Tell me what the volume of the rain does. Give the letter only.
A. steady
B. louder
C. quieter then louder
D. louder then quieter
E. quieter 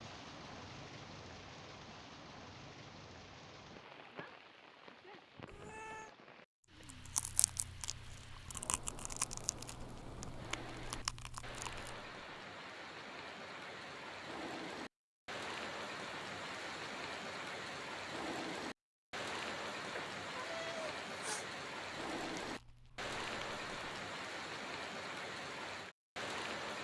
B.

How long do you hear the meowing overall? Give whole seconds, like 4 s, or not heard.
2 s.